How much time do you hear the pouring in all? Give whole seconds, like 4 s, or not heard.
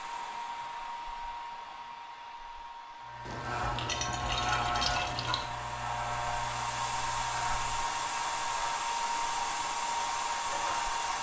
2 s.